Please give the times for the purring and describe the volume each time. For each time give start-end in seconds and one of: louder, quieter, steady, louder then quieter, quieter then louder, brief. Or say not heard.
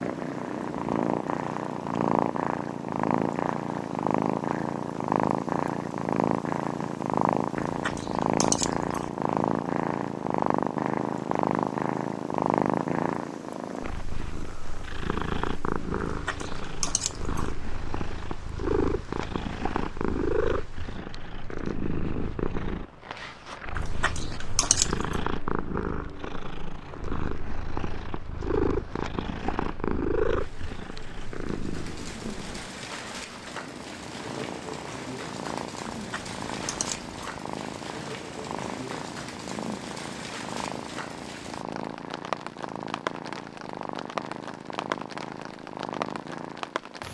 0.0-47.0 quieter.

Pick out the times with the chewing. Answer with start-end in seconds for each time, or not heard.
7.5-9.1, 16.1-17.6, 23.8-25.2, 36.0-37.1.